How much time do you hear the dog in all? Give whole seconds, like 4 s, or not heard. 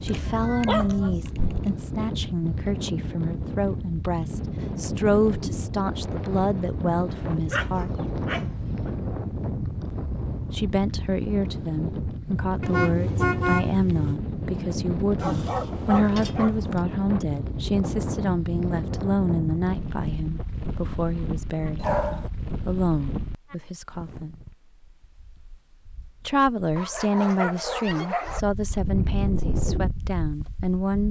7 s.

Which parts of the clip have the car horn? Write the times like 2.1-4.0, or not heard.
12.6-14.2.